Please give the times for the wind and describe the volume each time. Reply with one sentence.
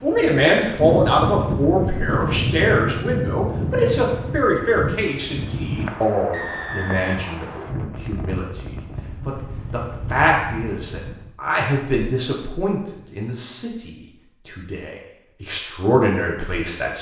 The wind can be heard from 0.0 to 11.3 s, getting quieter.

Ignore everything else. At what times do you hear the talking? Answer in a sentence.
The talking can be heard from 0.0 to 16.9 s.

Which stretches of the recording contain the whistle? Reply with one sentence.
You can hear the whistle from 6.3 to 7.8 s.